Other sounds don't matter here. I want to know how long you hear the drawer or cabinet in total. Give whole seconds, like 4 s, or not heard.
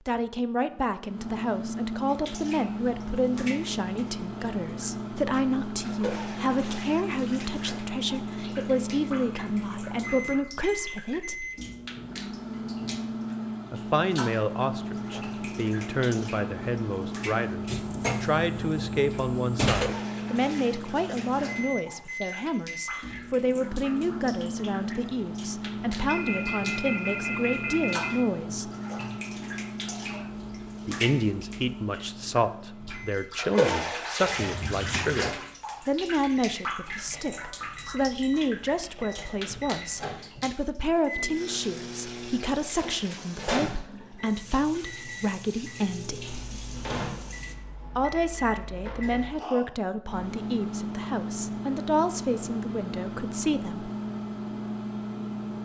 3 s.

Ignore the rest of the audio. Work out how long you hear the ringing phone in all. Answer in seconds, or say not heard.
2 s.